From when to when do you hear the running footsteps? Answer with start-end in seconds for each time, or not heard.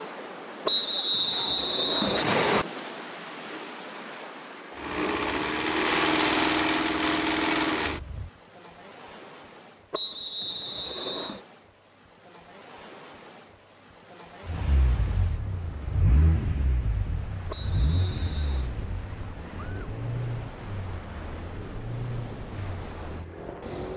not heard.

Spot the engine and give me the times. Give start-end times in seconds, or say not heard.
4.8-8.3, 14.4-23.9.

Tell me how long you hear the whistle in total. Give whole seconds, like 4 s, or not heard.
5 s.